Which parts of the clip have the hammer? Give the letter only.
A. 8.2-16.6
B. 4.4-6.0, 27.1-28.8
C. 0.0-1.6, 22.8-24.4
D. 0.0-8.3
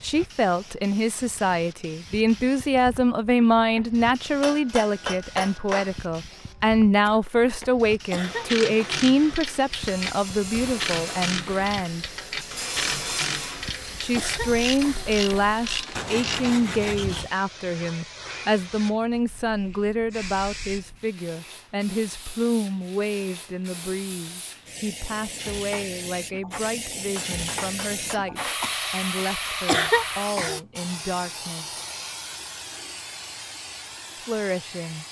B.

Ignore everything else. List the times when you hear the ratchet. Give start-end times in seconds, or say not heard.
8.2-16.6.